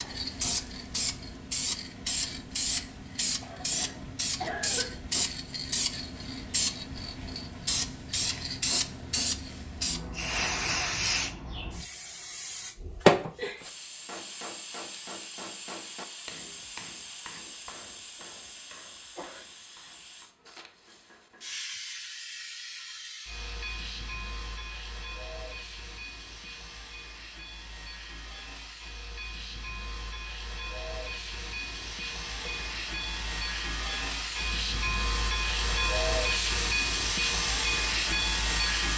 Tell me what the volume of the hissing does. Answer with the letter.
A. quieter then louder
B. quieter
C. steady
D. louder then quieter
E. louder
A.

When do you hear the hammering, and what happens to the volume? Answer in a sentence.
You can hear the hammering from 14.1 to 21.6 s, getting quieter.